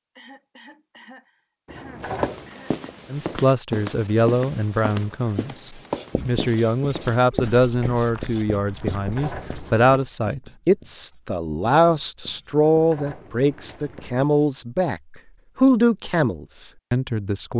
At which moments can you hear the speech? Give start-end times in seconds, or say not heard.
3.1-17.5.